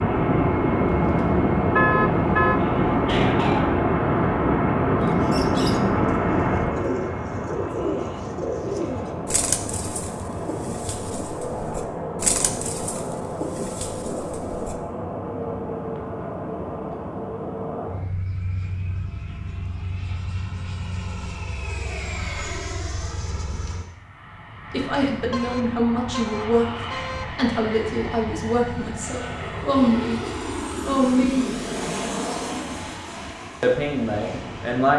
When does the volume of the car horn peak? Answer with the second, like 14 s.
2 s.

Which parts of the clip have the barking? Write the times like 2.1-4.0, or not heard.
2.6-3.9.